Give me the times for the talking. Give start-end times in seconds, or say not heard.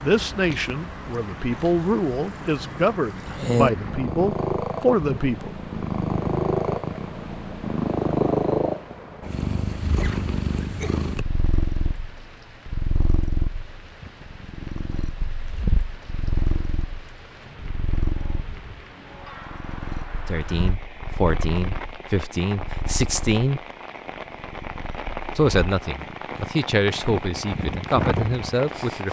0.0-5.5, 20.2-23.6, 25.4-29.0.